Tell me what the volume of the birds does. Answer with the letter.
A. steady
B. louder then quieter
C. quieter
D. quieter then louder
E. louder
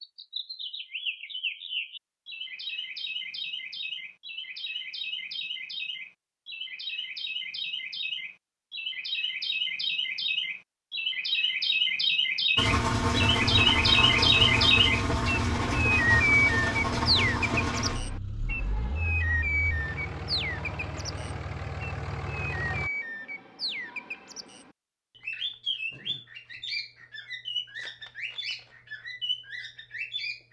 B.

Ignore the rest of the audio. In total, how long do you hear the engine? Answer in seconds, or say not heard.
10 s.